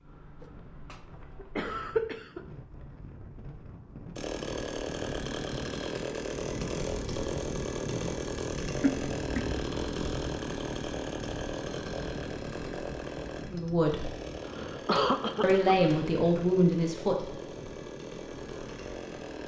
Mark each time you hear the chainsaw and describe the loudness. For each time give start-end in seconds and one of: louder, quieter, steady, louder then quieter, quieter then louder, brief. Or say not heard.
4.2-19.4 quieter.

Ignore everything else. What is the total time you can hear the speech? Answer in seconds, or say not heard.
2 s.